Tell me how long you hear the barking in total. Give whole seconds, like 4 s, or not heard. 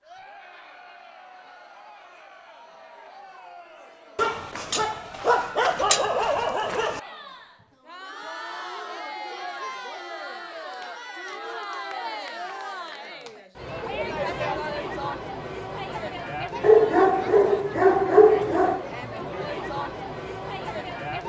5 s.